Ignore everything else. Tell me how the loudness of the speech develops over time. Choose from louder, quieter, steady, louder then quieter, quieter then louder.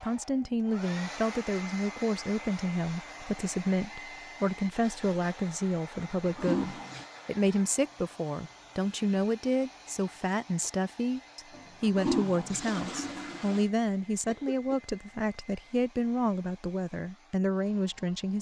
steady.